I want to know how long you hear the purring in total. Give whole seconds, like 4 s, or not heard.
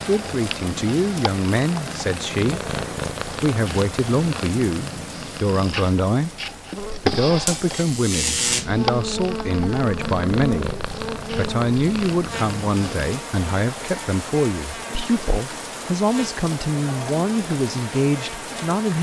13 s.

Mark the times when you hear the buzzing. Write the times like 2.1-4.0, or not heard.
6.8-18.9.